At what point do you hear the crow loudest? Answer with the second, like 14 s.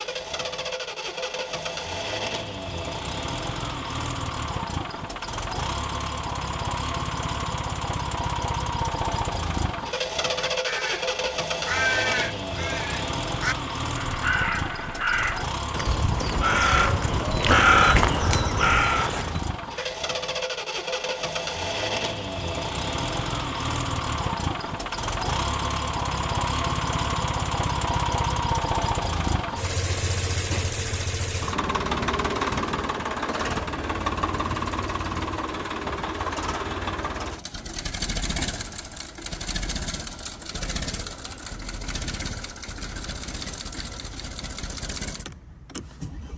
18 s.